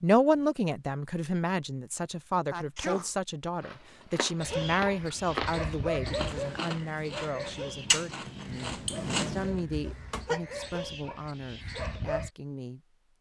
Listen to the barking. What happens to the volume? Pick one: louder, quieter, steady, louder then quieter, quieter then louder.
quieter then louder.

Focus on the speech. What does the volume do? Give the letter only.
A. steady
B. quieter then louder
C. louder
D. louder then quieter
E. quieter
E.